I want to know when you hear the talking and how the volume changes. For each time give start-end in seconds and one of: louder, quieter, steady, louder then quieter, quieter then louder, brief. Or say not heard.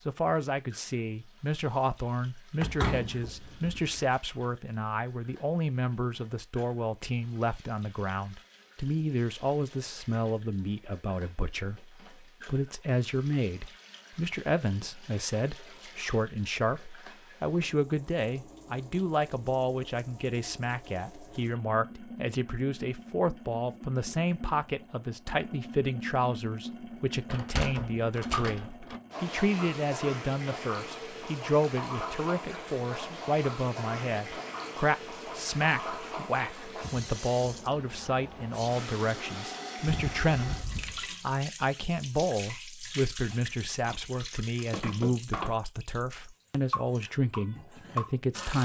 0.1-48.5 steady.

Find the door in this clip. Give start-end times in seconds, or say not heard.
2.6-4.0, 27.2-29.0, 39.9-41.0.